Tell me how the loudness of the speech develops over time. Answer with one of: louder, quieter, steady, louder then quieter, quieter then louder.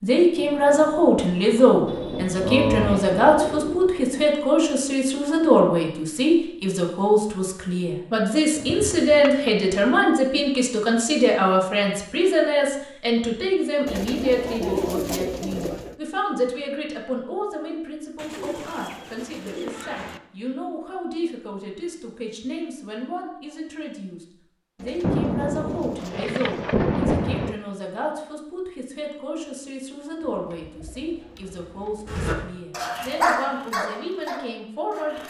quieter.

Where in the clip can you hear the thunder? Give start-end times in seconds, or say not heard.
0.3-4.3, 25.0-27.6.